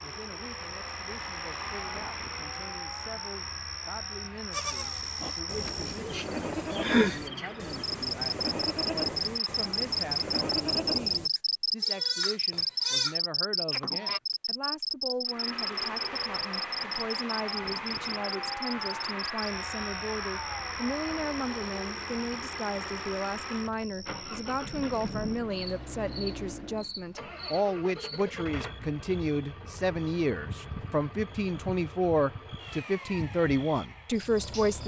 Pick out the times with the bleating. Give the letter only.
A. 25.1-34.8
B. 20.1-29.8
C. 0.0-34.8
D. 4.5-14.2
D.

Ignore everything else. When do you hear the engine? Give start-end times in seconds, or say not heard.
0.0-10.6, 15.2-34.8.